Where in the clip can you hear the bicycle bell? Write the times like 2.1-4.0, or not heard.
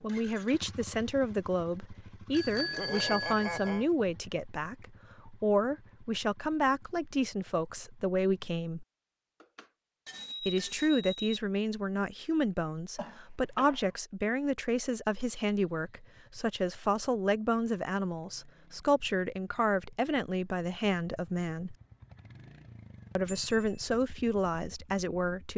2.3-3.9, 9.4-11.3, 23.2-23.8.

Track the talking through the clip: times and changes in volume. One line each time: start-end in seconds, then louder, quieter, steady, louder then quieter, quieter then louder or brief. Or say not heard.
0.0-8.8 steady
10.4-21.8 steady
23.1-25.5 brief.